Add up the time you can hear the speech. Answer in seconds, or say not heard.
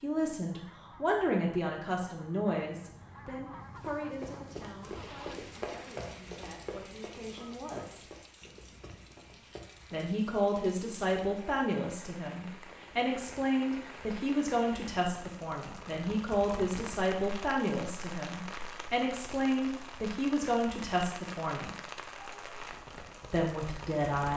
21 s.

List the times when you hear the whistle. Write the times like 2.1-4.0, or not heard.
not heard.